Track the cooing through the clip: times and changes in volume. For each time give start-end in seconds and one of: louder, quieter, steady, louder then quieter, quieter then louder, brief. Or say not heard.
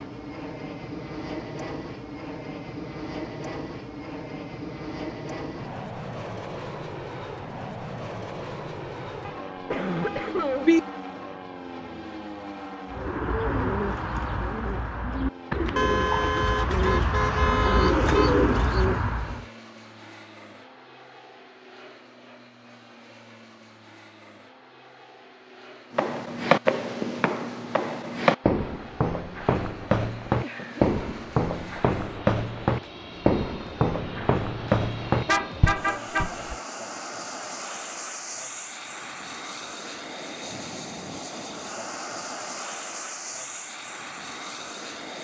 12.9-19.4 louder.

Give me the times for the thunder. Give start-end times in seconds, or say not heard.
not heard.